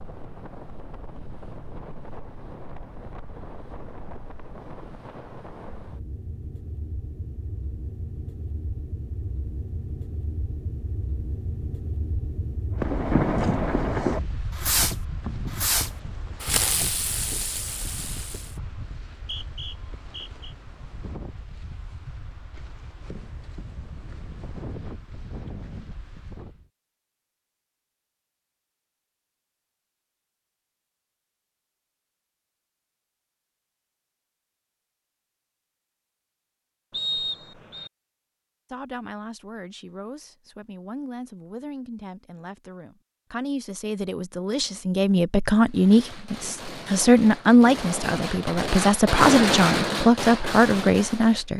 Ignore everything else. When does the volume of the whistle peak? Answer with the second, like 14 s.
37 s.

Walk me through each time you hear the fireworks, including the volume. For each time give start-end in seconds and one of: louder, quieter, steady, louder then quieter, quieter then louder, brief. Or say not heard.
12.8-18.6 quieter
45.6-51.5 louder then quieter.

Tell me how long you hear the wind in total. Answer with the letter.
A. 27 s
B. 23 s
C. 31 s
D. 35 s
A.